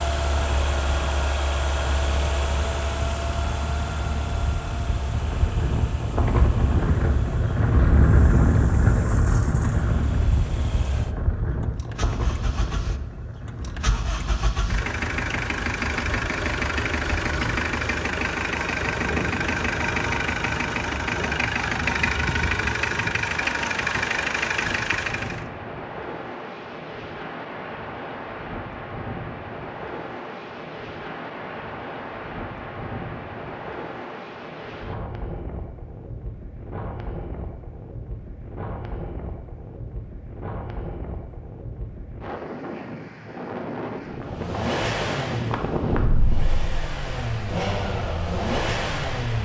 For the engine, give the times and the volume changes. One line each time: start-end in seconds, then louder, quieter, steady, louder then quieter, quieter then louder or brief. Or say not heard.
0.0-25.4 quieter then louder
44.2-49.4 quieter then louder.